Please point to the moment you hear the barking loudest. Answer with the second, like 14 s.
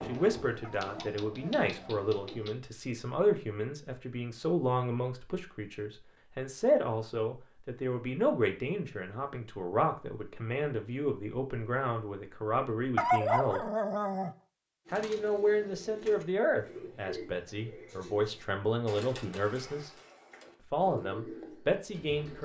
13 s.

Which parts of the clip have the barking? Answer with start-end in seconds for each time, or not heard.
0.6-2.0, 12.9-14.3.